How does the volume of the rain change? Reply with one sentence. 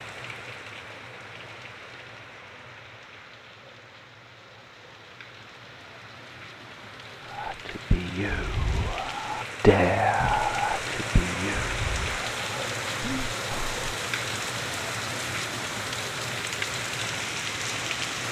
The volume of the rain goes up.